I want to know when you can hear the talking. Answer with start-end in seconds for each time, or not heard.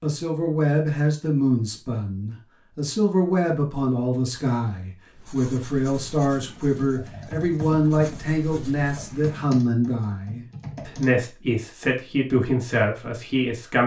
0.0-13.8.